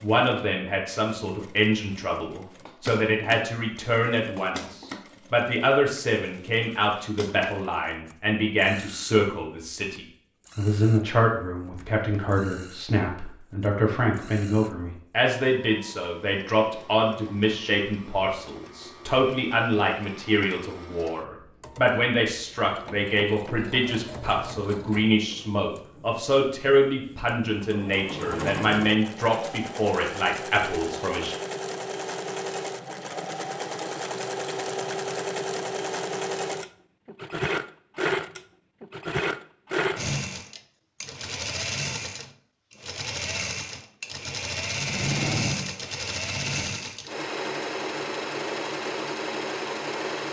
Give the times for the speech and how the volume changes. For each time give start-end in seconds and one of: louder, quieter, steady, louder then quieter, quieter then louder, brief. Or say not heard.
0.0-31.4 steady.